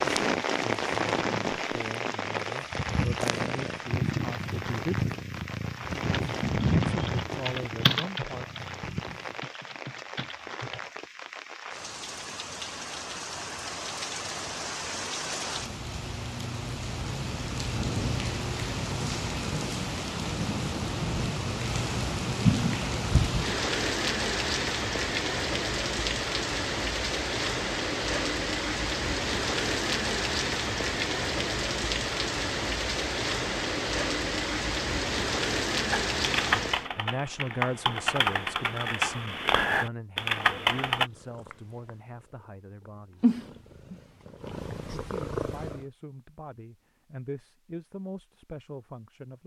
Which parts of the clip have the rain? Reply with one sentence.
The rain can be heard from 0.0 to 36.9 s.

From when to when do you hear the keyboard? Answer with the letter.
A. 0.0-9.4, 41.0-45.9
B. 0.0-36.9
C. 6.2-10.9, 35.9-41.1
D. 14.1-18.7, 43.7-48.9
C.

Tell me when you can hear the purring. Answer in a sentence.
You can hear the purring from 0.0 to 9.4 s and from 41.0 to 45.9 s.